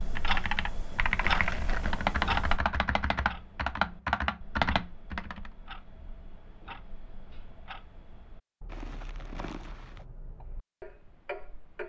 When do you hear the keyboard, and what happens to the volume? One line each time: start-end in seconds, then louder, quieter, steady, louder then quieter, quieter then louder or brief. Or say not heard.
0.1-5.5 steady.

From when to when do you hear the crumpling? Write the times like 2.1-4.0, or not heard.
1.2-2.0, 8.7-10.1.